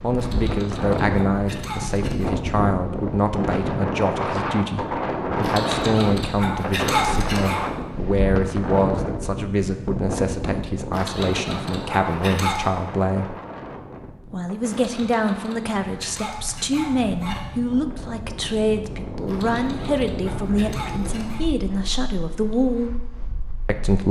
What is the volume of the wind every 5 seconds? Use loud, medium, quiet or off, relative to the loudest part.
loud, loud, medium, medium, medium.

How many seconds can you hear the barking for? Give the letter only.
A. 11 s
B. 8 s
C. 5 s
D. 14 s
A.